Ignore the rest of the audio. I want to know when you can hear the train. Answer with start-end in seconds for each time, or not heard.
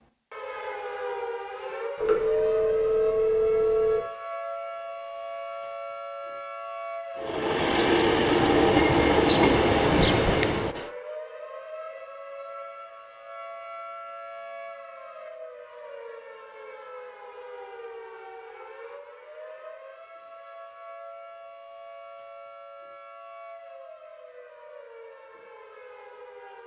7.2-10.9.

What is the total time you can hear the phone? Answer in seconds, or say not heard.
2 s.